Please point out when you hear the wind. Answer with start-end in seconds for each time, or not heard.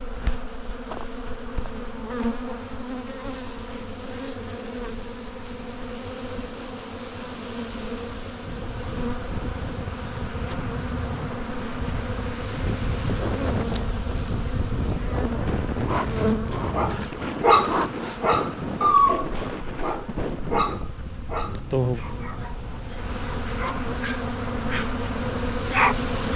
8.4-26.2.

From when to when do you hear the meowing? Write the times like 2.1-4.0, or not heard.
not heard.